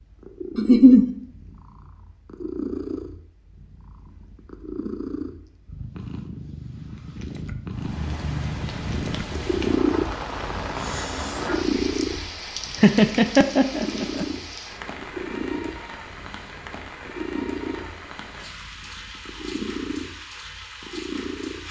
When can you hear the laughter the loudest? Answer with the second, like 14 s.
1 s.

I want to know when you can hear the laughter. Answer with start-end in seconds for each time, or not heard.
0.6-1.1, 12.8-14.2.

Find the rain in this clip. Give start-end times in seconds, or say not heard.
7.7-21.6.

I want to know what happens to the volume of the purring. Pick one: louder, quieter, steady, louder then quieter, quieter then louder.
louder then quieter.